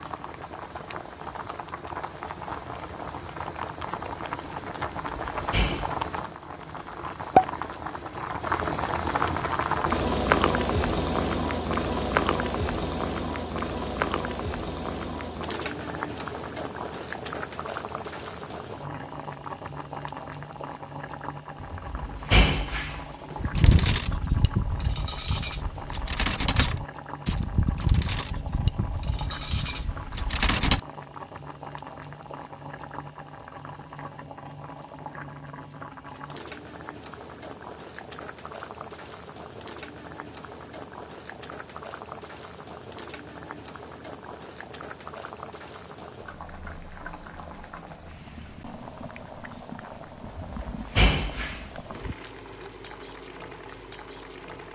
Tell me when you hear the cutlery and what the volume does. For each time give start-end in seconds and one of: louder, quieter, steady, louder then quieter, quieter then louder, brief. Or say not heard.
23.5-30.8 steady.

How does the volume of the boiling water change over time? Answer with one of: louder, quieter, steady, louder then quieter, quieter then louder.
quieter.